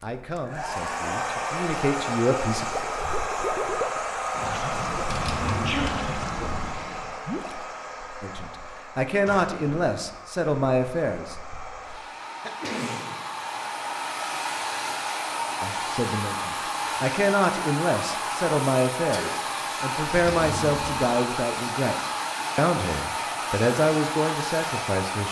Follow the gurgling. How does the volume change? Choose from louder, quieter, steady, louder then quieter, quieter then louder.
quieter.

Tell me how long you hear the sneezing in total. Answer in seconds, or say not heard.
2 s.